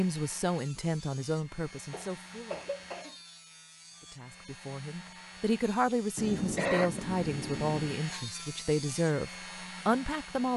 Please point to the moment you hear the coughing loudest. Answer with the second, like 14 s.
7 s.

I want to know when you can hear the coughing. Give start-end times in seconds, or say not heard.
1.9-3.1, 6.2-8.0.